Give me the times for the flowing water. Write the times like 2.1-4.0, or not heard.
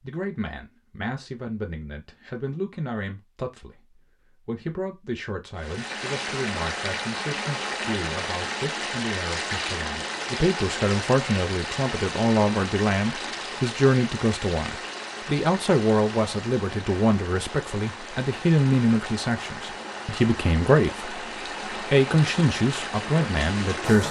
5.5-24.0.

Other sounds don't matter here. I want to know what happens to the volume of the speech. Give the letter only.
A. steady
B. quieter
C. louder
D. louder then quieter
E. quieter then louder
C.